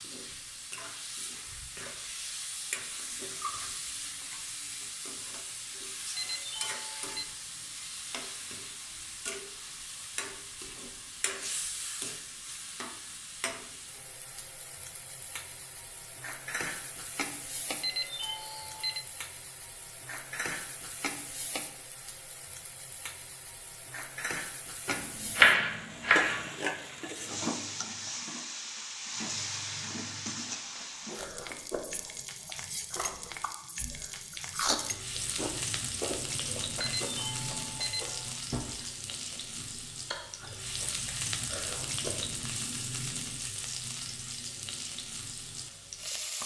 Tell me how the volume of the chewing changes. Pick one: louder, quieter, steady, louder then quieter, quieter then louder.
louder then quieter.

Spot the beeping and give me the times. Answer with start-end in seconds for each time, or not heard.
6.2-7.2, 17.8-19.1, 36.8-38.4.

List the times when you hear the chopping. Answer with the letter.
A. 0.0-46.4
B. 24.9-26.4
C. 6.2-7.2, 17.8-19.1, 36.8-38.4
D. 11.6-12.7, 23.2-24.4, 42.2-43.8
B.